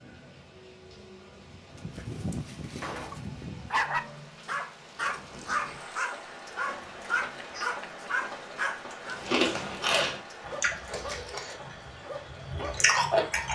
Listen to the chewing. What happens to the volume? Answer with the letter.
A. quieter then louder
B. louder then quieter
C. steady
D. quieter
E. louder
A.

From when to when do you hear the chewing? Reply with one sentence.
You can hear the chewing from 9.1 to 13.5 s.